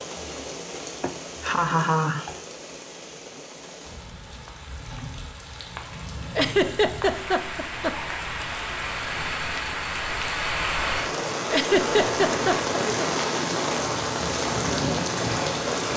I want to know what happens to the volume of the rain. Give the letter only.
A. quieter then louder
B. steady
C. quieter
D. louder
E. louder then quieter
D.